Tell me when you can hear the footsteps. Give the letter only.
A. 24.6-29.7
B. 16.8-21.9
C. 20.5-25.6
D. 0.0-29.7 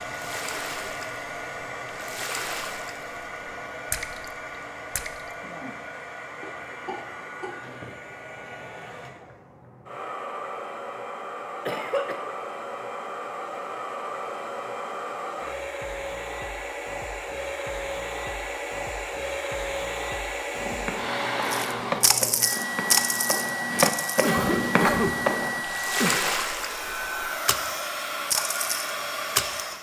C.